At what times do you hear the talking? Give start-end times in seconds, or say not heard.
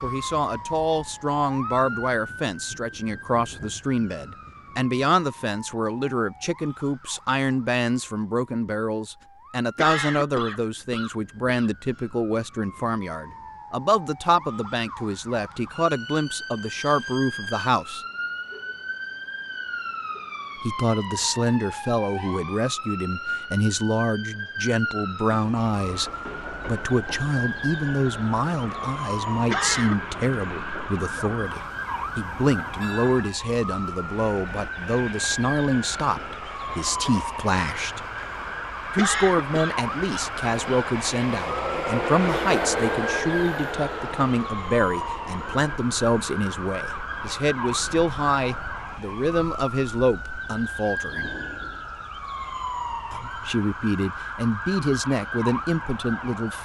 0.0-18.0, 20.6-38.0, 38.9-51.3, 53.1-56.5.